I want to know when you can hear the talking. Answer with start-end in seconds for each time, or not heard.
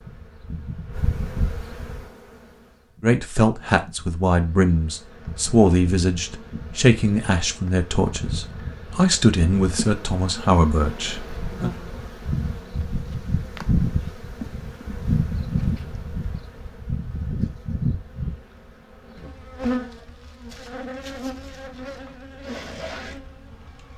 3.0-11.7.